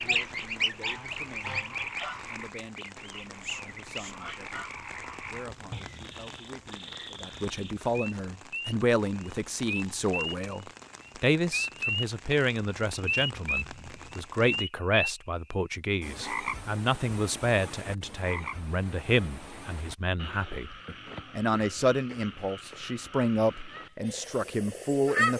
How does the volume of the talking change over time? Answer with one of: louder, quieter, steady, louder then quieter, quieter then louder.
louder.